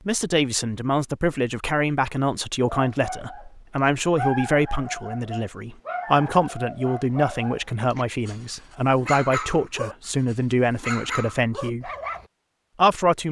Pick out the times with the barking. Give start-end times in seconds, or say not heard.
2.7-12.2.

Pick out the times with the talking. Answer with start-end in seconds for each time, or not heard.
0.1-11.9, 12.8-13.2.